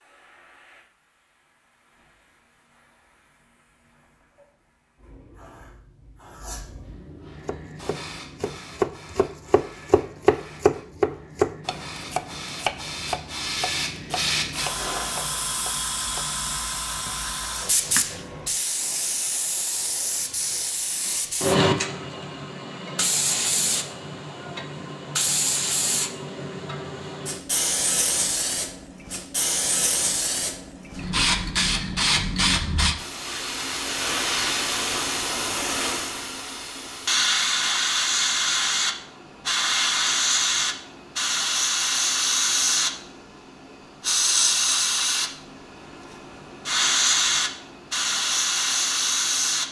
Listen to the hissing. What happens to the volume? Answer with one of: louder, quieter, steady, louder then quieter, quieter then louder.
louder.